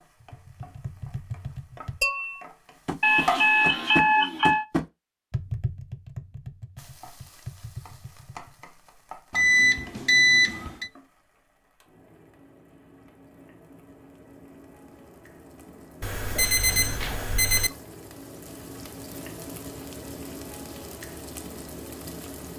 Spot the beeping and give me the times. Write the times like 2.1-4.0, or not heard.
3.0-4.7, 9.3-10.9, 16.0-17.7.